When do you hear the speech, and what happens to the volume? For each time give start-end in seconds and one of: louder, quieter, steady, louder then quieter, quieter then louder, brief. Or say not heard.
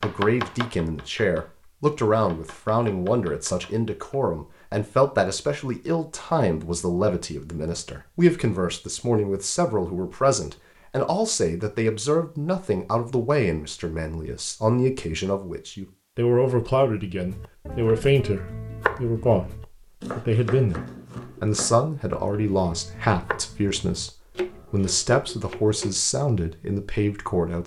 0.0-27.6 steady.